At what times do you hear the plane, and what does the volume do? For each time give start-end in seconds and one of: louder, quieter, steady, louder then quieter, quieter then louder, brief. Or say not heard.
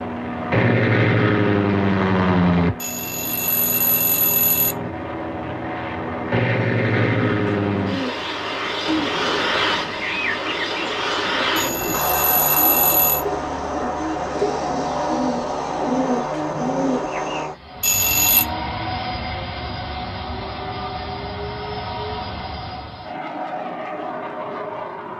0.0-25.1 quieter.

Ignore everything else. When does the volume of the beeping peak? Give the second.
18 s.